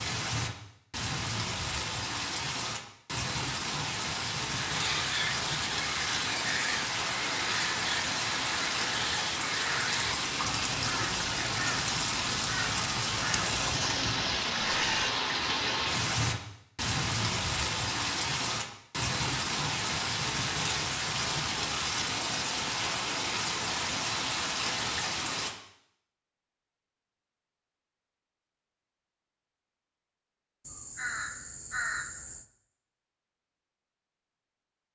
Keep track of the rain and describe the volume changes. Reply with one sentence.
The loudness of the rain stays about the same.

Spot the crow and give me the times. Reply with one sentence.
You can hear the crow from 4.5 to 15.2 s and from 30.6 to 32.5 s.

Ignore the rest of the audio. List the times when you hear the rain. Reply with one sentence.
You can hear the rain from 0.0 to 25.5 s.